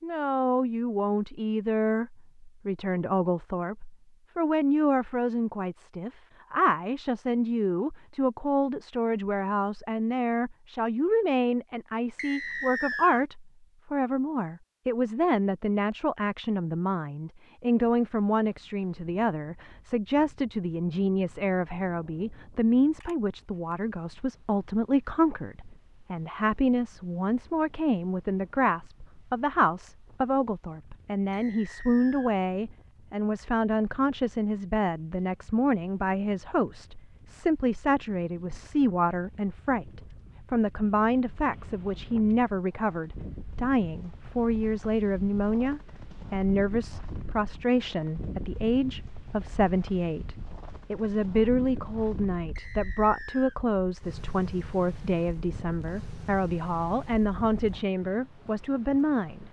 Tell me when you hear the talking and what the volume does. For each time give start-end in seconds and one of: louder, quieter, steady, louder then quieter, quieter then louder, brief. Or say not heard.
0.0-59.4 steady.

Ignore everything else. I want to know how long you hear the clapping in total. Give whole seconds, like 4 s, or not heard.
not heard.